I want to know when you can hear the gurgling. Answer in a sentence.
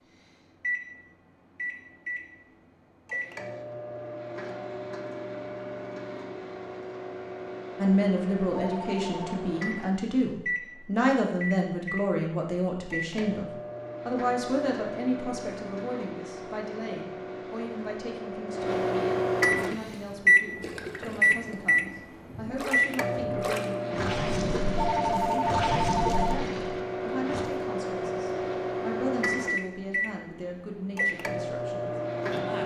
You can hear the gurgling from 19.6 to 27.4 s.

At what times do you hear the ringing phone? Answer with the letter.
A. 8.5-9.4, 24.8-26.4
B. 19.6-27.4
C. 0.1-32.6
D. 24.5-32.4
A.